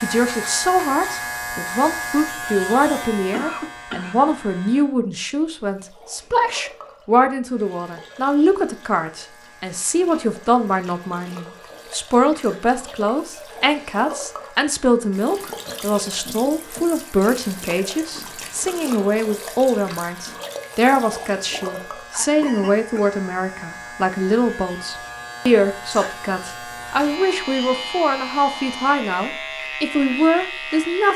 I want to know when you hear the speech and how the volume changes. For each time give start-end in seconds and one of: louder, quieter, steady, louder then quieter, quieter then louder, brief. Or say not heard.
0.0-31.1 steady.